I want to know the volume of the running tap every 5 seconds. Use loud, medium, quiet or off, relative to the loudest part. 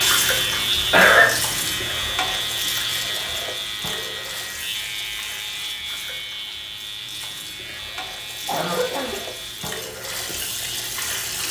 loud, medium, loud.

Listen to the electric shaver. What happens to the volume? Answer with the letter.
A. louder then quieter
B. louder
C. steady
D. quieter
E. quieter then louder
D.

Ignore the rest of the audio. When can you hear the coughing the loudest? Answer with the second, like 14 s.
1 s.